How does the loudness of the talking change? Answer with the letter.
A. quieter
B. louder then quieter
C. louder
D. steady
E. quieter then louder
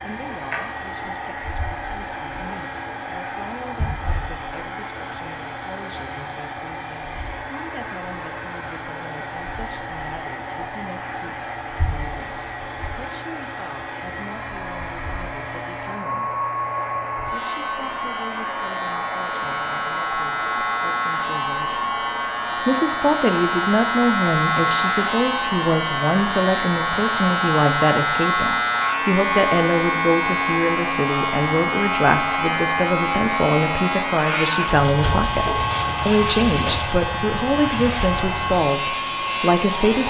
C.